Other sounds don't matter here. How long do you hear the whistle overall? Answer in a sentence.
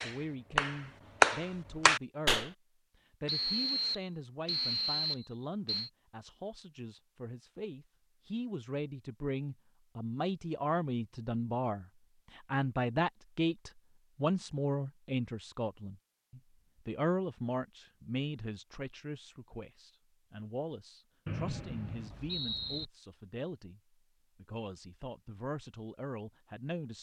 The whistle can be heard for 4 seconds in total.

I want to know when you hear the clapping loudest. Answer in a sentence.
The loudest moment of the clapping is at 1 second.